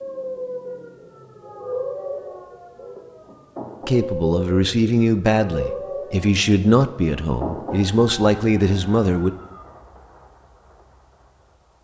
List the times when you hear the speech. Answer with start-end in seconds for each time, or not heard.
3.9-9.3.